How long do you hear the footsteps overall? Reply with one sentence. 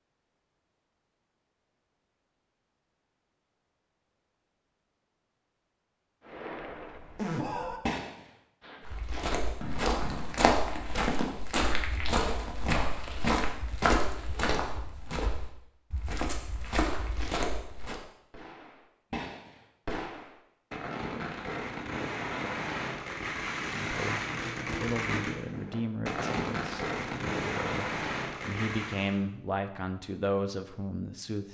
You can hear the footsteps for 9 seconds altogether.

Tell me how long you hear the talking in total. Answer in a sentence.
You can hear the talking for 8 seconds altogether.